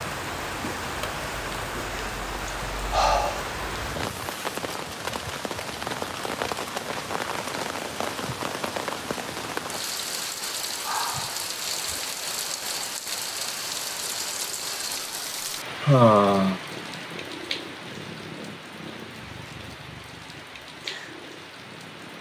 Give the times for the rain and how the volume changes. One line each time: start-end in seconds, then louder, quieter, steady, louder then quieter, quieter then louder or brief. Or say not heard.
0.0-22.1 quieter.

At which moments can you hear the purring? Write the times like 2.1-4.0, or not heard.
16.6-22.1.